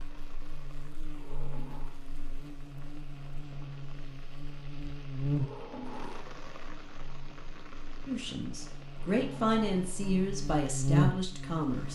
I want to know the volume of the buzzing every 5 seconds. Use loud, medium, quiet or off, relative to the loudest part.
quiet, medium, loud.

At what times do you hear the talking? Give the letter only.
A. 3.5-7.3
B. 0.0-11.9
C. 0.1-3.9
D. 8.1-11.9
D.